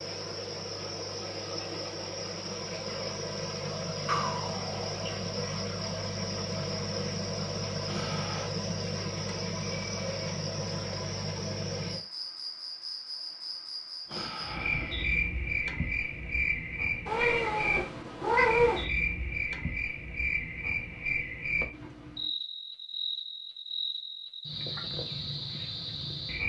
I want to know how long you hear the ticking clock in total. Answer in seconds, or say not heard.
not heard.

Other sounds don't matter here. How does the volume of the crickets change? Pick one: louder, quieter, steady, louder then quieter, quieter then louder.
steady.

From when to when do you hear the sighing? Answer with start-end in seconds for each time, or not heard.
7.8-8.5, 14.1-15.2.